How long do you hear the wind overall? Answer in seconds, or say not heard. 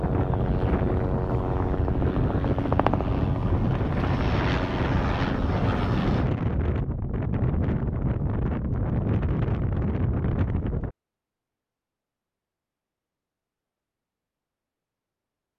11 s.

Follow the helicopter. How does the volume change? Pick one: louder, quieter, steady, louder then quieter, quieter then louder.
steady.